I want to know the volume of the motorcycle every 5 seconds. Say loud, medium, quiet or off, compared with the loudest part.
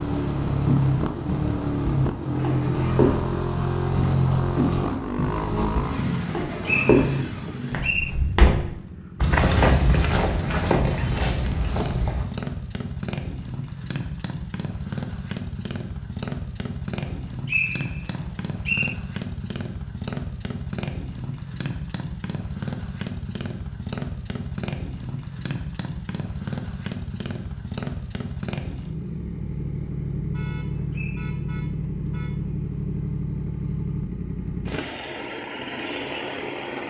loud, medium, medium, medium, medium, medium, medium, medium.